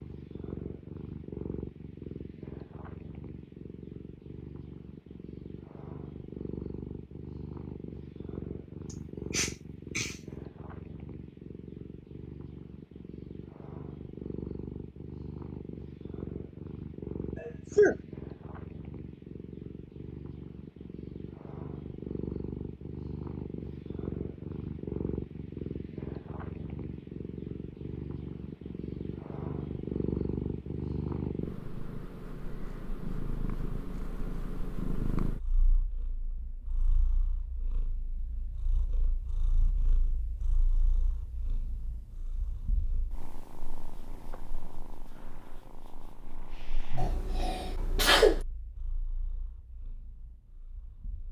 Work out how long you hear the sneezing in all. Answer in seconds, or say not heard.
3 s.